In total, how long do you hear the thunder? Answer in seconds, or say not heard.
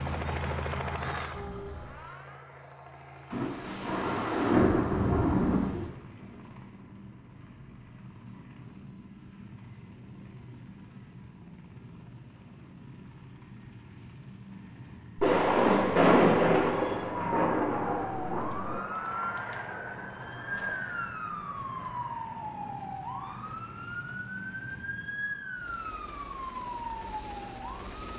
6 s.